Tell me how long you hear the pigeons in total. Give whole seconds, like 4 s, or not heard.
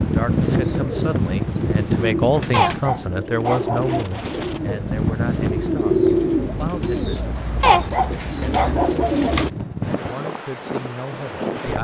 9 s.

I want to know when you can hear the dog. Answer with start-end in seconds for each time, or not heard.
2.5-4.2, 7.6-9.3.